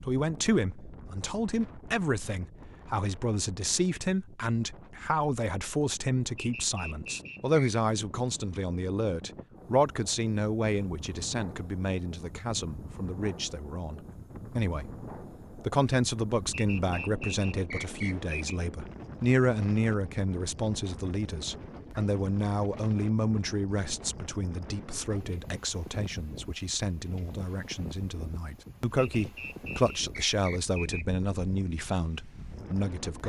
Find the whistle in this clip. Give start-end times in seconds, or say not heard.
6.3-7.7, 16.5-18.6, 29.0-31.1.